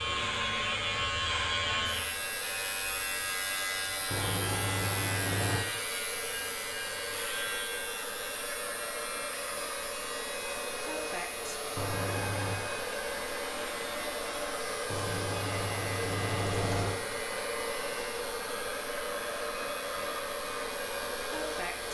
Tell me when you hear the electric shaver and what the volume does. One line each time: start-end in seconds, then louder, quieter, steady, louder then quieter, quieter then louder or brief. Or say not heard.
0.0-21.8 quieter.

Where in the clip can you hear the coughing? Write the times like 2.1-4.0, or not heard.
not heard.